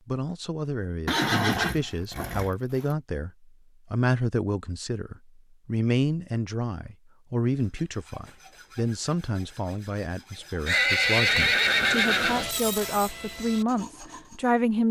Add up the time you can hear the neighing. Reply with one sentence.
You can hear the neighing for 4 seconds altogether.